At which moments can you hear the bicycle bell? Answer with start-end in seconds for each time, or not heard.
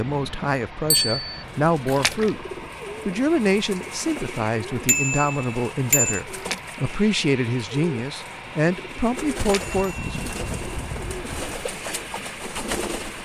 0.9-1.4, 4.8-6.2, 9.4-11.4.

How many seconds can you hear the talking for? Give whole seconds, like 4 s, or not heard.
10 s.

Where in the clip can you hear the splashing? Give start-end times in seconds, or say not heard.
1.9-2.4, 6.3-6.8, 9.3-9.9.